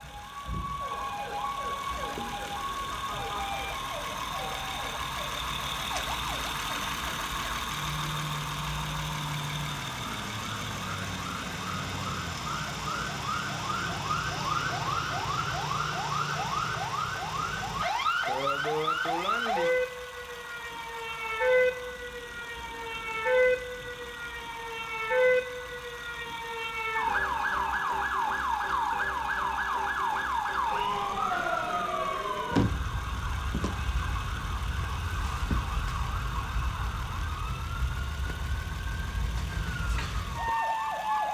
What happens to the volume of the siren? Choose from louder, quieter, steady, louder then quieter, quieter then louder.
louder then quieter.